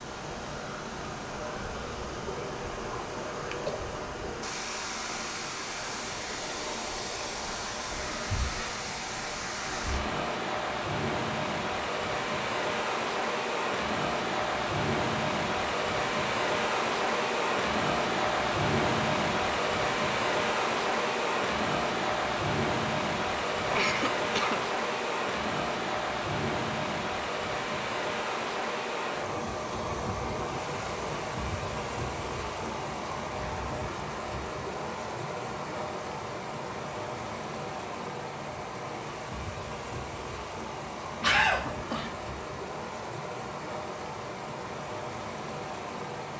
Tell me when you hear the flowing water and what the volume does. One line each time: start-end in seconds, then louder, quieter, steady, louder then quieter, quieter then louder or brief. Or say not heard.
0.0-46.3 louder then quieter.